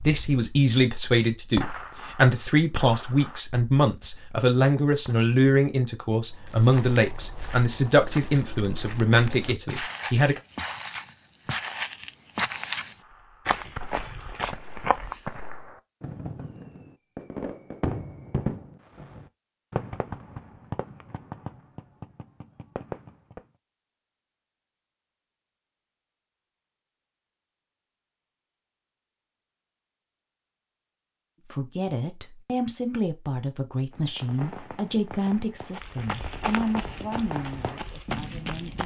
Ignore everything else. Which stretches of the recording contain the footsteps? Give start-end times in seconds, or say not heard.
6.3-15.6, 35.7-38.8.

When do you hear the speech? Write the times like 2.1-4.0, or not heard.
0.1-10.4, 31.5-38.8.